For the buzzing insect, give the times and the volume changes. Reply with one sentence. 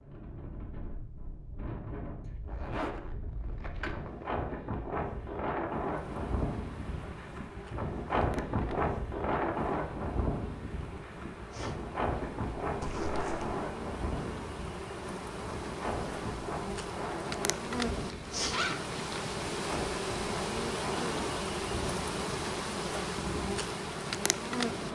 You can hear the buzzing insect from 5.8 to 24.9 s, getting louder.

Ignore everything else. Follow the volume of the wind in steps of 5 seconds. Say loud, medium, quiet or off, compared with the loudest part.
medium, loud, loud, medium, medium.